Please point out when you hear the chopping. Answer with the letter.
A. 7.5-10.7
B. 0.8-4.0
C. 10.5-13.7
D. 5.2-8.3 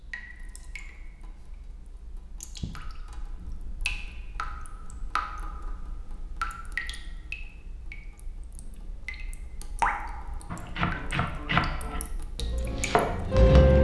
C.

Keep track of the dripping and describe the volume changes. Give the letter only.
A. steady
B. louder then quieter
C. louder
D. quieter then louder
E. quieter
B.